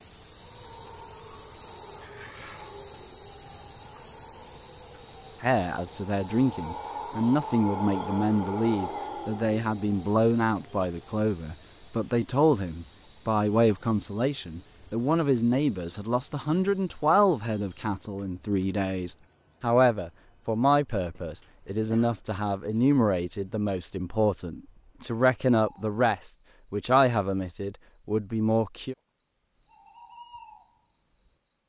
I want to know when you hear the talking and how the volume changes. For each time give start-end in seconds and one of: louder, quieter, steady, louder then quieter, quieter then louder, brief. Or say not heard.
5.4-28.9 steady.